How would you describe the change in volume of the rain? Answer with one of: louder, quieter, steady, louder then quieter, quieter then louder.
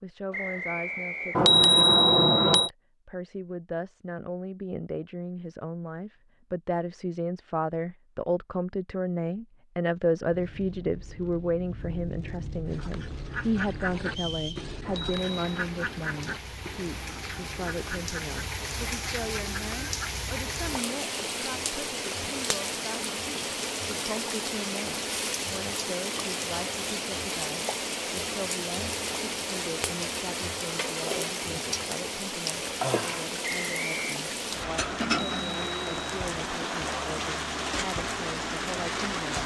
louder.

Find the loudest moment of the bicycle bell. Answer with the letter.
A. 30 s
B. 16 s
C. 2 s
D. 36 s
C.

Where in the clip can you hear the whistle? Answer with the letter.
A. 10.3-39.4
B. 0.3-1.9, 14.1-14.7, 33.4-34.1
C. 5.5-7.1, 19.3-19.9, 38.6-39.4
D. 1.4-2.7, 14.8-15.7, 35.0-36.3
B.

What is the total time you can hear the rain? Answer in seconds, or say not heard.
29 s.